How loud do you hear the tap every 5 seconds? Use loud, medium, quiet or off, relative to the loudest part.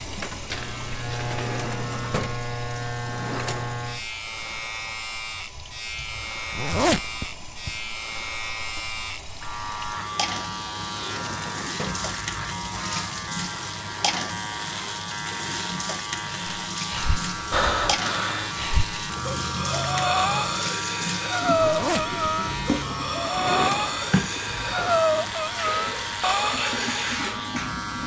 medium, medium, loud, loud, loud, loud.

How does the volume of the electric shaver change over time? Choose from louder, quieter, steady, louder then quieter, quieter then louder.
steady.